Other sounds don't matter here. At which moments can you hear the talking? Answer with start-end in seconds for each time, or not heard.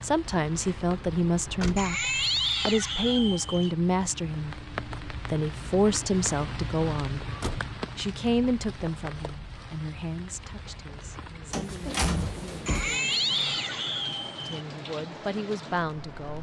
0.0-7.2, 8.0-13.6, 14.4-16.3.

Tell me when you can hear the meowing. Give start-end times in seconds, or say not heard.
1.8-3.8, 12.7-14.7.